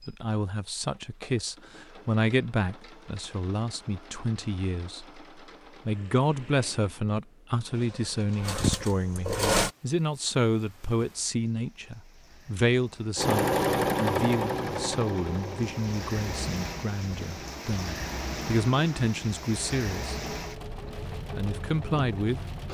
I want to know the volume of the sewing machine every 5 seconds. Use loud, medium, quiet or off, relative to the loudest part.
quiet, medium, loud, quiet, quiet.